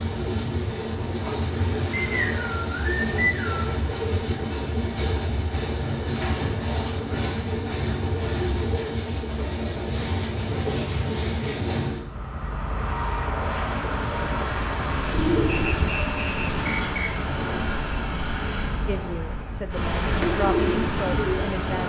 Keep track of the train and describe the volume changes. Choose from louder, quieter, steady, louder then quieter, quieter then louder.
steady.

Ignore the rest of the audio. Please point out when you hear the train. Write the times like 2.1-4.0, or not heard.
0.0-21.8.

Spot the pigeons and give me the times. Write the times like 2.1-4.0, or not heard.
15.1-16.9, 20.1-21.8.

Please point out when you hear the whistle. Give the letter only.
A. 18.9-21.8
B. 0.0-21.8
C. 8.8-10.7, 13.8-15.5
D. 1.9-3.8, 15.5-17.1
D.